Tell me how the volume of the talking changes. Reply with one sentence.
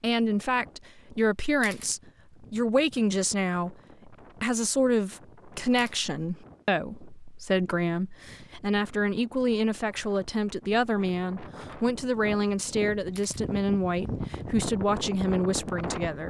The volume of the talking stays about the same.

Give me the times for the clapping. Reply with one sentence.
The clapping can't be heard in this clip.